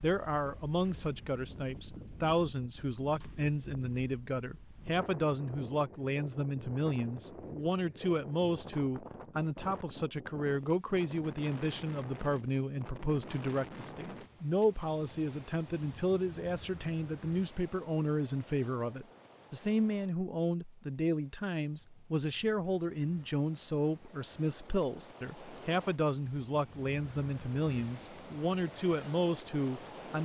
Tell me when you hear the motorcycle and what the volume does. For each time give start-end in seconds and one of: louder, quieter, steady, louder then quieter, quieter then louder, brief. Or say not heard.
not heard.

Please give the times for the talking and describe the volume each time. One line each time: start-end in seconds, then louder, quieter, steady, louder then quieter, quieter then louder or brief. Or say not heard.
0.0-30.2 steady.